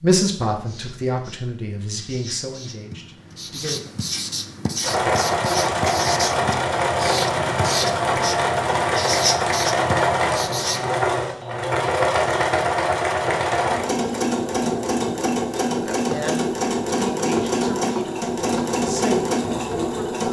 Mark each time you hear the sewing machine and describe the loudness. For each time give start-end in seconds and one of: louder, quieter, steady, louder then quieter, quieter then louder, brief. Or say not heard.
4.8-20.2 steady.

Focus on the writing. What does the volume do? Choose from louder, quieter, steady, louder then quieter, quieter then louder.
louder.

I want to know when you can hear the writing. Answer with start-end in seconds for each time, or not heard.
0.5-10.9.